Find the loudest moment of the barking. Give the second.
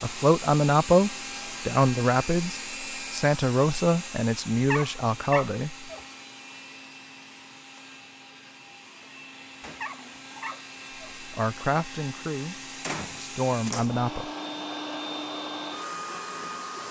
5 s.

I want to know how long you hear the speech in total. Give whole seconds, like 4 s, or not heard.
9 s.